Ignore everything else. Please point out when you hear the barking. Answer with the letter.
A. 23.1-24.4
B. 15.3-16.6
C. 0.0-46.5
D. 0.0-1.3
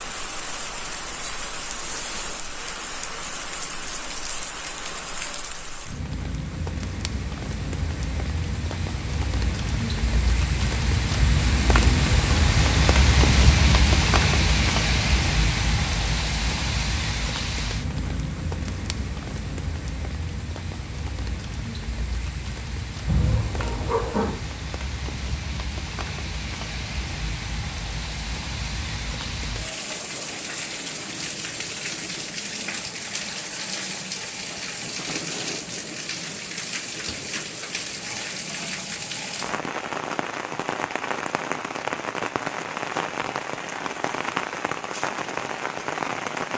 A.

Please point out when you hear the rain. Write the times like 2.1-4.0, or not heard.
0.0-46.5.